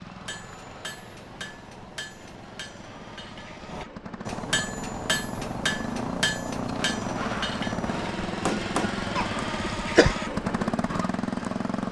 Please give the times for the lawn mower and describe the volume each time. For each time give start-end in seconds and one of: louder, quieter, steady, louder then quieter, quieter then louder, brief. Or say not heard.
0.0-11.8 louder.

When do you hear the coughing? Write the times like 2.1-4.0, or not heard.
9.2-10.2.